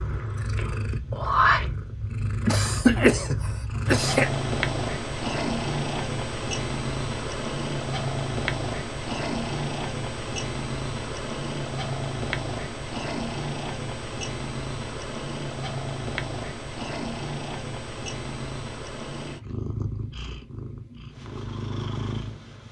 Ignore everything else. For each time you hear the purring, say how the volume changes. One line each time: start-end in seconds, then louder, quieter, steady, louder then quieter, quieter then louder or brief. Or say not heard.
0.0-22.6 quieter.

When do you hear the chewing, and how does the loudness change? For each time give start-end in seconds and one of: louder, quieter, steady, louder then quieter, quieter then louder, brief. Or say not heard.
not heard.